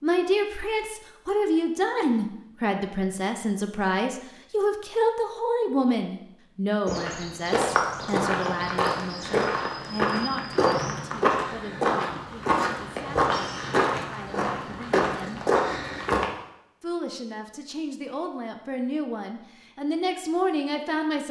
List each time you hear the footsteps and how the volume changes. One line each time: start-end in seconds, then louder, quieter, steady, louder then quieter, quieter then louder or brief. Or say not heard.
6.8-16.3 steady.